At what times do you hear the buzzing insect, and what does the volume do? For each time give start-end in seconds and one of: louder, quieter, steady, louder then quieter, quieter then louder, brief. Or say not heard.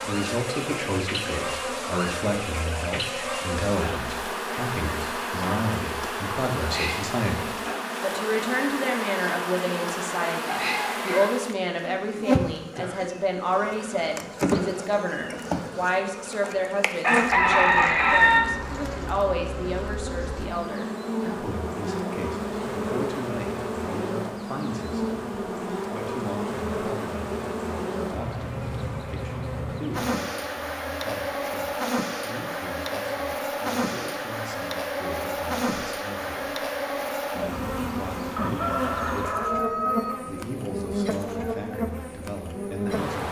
0.0-43.2 steady.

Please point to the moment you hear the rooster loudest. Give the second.
18 s.